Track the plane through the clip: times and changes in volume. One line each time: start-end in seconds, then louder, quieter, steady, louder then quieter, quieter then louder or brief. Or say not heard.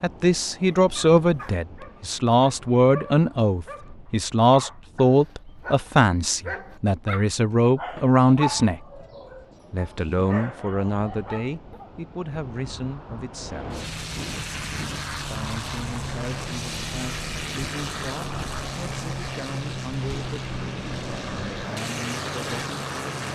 13.3-23.3 steady.